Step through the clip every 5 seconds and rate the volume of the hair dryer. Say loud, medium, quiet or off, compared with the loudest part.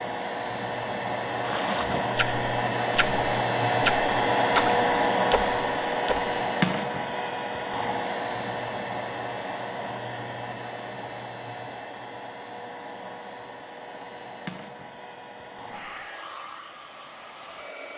loud, loud, quiet, quiet.